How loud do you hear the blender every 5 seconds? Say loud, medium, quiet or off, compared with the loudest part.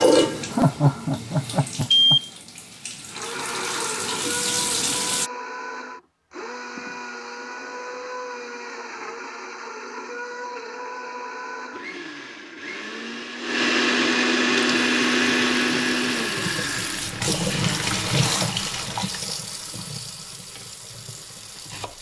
medium, medium, loud, loud, off.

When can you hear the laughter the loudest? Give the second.
1 s.